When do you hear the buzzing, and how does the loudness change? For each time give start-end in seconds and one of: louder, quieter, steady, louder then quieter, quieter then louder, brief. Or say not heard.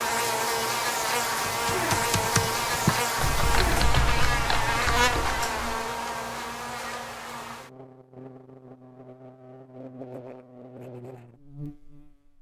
0.0-12.3 quieter.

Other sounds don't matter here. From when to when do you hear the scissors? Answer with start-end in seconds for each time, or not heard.
not heard.